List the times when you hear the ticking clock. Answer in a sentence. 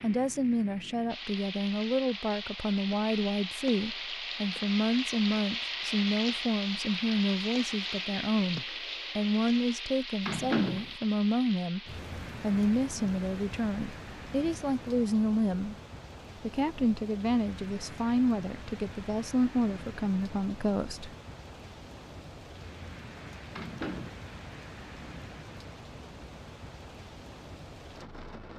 The ticking clock can't be heard in this clip.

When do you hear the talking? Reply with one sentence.
The talking can be heard from 0.0 to 15.8 s and from 16.4 to 21.1 s.